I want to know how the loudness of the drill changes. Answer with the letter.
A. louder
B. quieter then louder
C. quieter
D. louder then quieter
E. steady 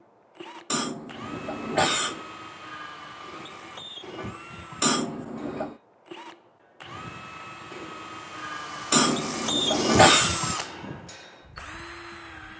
A.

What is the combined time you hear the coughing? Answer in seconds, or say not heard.
4 s.